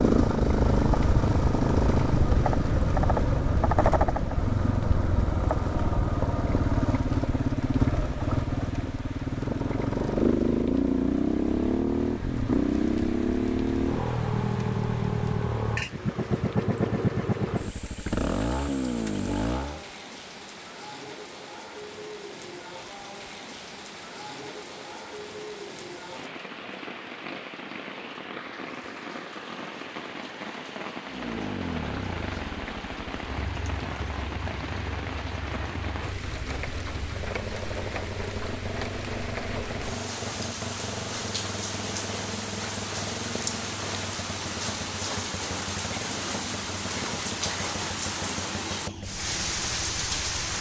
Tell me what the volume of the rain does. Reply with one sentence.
The volume of the rain goes up.